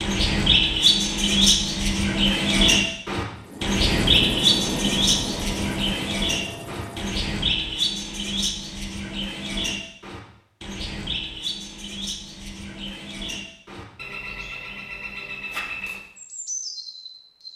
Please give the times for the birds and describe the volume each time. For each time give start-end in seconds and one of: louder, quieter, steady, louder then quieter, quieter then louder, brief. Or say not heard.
0.0-17.5 quieter.